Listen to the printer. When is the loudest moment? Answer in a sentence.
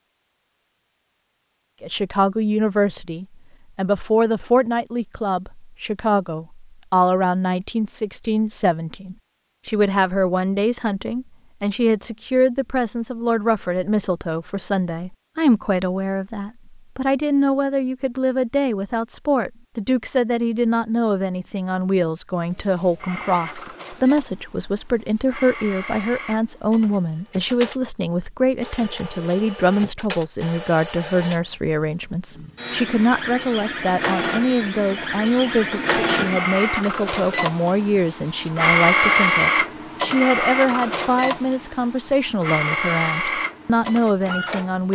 The loudest moment of the printer is at 39 seconds.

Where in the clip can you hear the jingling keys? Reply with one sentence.
You can't hear the jingling keys here.